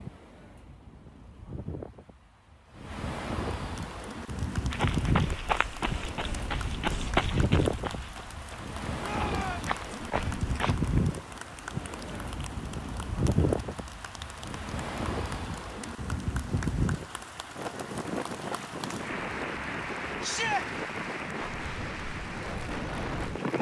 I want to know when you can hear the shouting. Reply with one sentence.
You can hear the shouting from 9.0 to 9.8 s and from 20.2 to 20.6 s.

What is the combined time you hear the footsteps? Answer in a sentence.
The footsteps can be heard for 6 seconds in total.